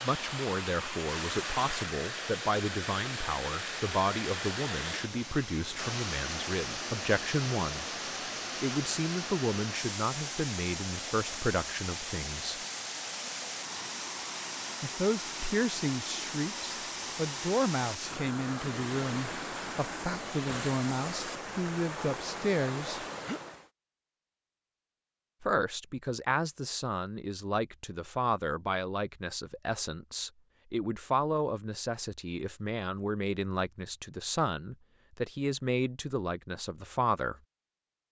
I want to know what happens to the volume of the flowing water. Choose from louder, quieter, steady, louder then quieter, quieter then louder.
steady.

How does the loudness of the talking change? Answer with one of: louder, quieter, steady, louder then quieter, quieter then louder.
steady.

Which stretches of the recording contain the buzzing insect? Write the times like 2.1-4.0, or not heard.
not heard.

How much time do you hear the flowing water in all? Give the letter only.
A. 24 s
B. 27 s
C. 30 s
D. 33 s
A.